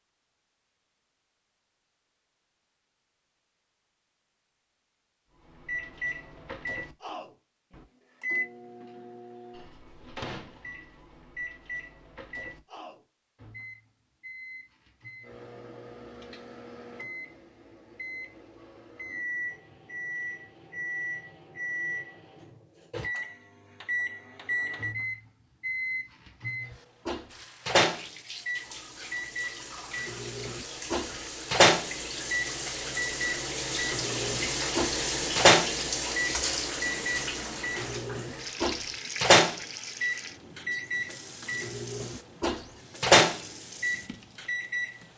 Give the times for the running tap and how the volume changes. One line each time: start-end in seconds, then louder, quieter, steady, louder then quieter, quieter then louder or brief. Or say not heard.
27.2-45.1 louder then quieter.